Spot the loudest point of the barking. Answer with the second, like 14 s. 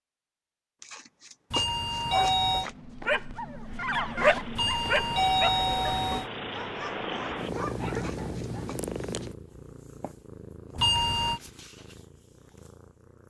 4 s.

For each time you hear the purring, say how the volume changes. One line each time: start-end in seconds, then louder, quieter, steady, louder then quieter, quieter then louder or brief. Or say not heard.
3.5-13.2 louder then quieter.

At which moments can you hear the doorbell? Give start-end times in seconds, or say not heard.
1.5-2.7, 4.5-6.3, 10.8-11.4.